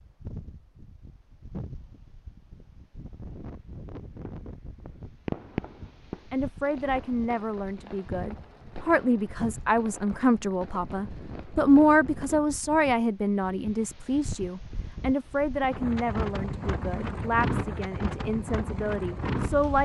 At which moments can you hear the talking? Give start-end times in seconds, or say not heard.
6.3-19.8.